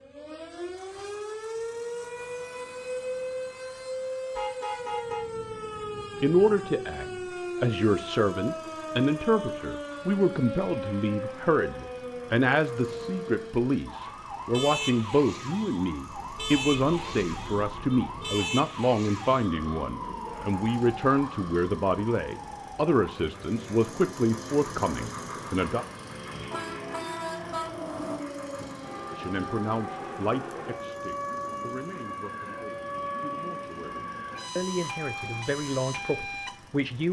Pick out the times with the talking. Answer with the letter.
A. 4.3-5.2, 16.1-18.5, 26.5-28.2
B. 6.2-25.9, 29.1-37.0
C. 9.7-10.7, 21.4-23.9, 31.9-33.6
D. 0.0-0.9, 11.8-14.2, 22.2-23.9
B.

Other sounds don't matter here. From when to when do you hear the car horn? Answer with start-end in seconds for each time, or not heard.
4.3-5.2, 16.1-18.5, 26.5-28.2.